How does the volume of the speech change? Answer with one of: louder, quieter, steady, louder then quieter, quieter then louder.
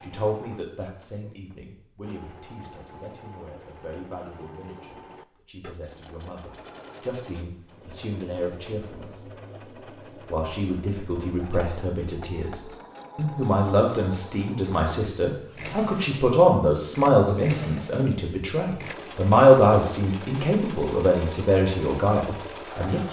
louder.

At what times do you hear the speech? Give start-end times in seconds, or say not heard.
0.0-9.2, 10.2-23.0.